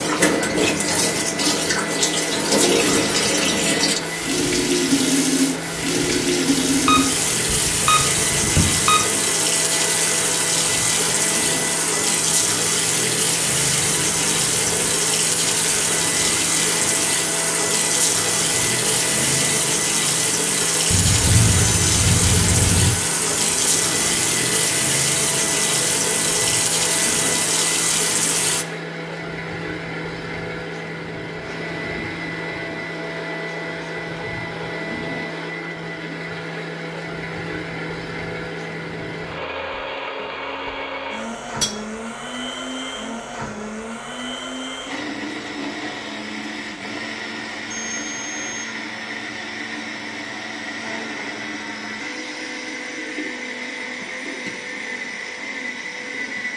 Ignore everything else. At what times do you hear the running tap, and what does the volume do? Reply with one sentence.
You can hear the running tap from 0.0 to 28.6 s, at a steady volume.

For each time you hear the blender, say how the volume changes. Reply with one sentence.
The blender can be heard from 0.0 to 56.5 s, at a steady volume.